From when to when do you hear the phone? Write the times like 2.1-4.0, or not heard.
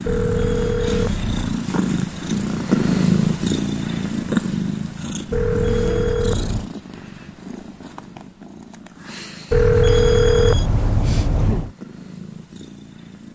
0.1-1.6, 5.3-6.7, 9.5-11.7.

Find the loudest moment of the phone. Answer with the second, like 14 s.
10 s.